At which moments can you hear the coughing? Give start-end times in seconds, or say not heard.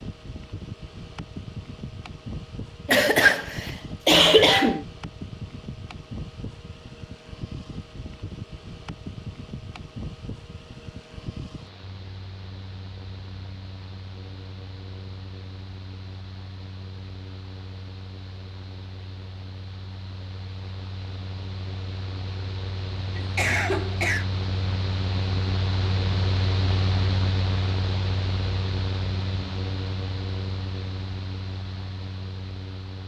2.9-3.4, 4.0-4.8, 23.1-24.2.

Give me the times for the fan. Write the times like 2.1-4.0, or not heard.
0.0-33.0.